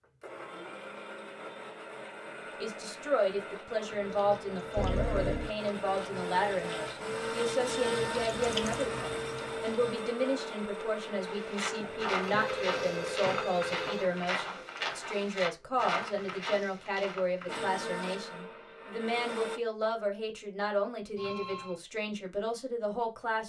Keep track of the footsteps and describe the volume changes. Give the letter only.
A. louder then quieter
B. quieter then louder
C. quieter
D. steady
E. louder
C.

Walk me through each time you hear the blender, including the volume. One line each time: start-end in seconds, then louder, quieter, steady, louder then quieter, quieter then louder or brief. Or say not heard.
0.0-15.8 louder then quieter
17.4-19.6 brief.